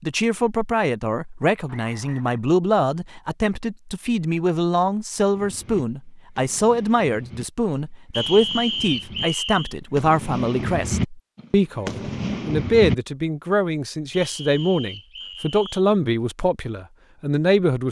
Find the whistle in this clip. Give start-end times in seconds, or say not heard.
1.6-2.4, 8.1-9.8, 14.1-15.8.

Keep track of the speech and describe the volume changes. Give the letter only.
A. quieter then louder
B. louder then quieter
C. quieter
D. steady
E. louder
D.